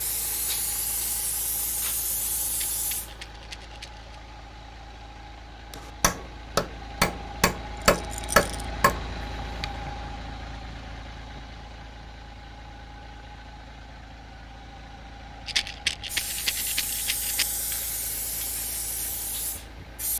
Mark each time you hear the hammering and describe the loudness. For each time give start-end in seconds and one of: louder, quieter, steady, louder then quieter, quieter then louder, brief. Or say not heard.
5.7-9.9 louder then quieter.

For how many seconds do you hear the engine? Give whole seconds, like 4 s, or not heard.
20 s.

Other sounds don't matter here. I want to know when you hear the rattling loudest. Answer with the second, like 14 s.
16 s.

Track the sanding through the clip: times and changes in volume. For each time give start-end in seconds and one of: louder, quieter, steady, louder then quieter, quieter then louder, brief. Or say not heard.
not heard.